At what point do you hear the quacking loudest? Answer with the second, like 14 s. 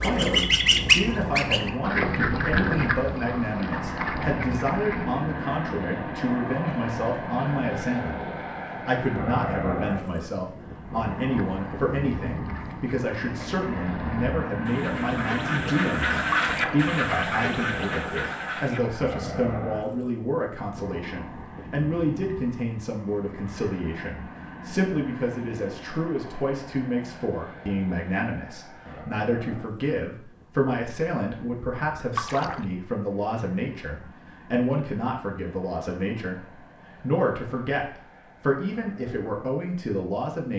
1 s.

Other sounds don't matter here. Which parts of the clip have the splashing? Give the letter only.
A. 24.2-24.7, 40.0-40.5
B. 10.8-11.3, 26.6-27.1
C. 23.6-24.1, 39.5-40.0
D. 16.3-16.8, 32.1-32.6
D.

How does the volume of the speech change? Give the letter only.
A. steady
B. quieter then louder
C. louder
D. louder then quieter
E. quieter
A.